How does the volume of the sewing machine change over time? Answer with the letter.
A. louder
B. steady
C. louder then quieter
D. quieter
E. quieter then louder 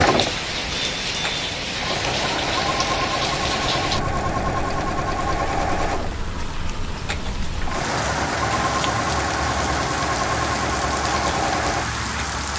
B.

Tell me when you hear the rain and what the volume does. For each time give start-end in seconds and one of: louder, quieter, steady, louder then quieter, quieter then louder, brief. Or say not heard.
0.0-12.5 quieter then louder.